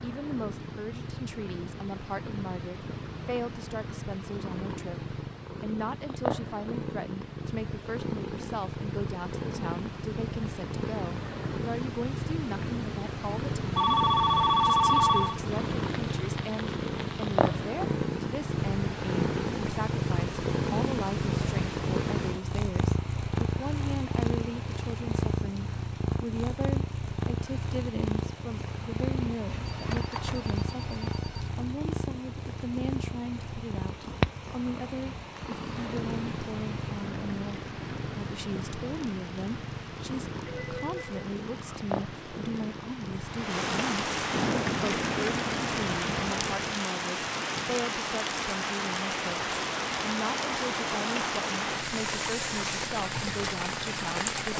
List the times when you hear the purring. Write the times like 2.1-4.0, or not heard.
0.0-46.9.